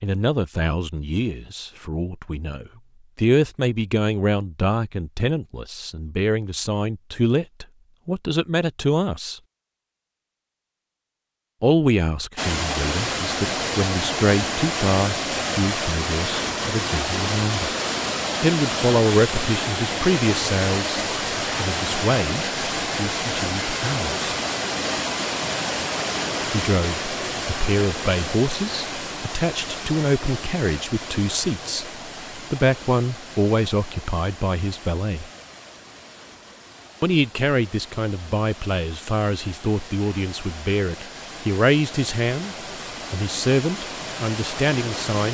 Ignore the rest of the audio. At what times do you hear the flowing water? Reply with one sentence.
The flowing water can be heard from 12.3 to 45.3 s.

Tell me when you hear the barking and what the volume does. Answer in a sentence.
You can't hear the barking here.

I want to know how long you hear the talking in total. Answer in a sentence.
You can hear the talking for 38 seconds altogether.